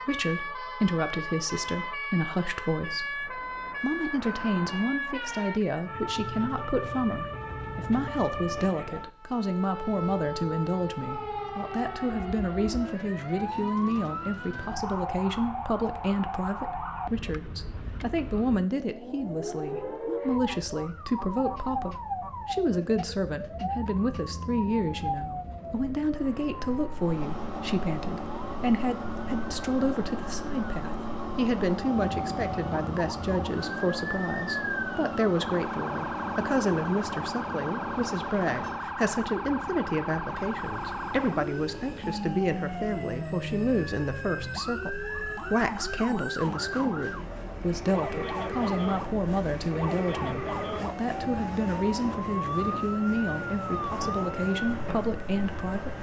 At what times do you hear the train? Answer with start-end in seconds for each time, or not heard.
26.9-55.9.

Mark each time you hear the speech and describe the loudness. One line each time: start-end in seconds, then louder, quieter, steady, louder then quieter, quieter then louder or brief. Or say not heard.
0.1-55.9 steady.